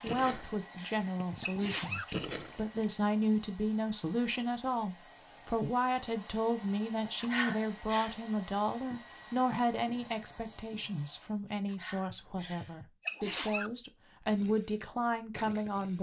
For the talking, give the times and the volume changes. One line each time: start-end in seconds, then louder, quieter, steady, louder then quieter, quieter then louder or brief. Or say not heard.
0.0-15.9 steady.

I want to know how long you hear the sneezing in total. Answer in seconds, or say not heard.
5 s.